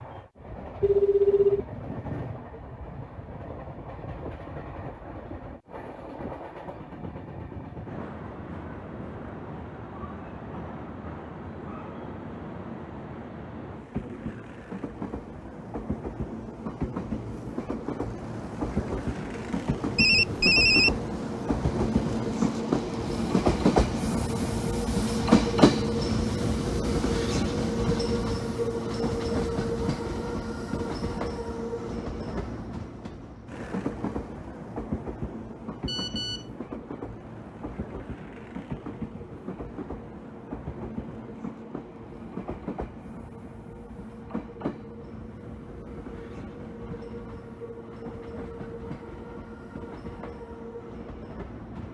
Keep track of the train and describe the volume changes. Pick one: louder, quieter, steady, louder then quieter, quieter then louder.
louder then quieter.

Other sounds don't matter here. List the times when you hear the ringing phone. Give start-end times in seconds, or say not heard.
0.8-1.6, 19.9-21.0, 35.9-36.5.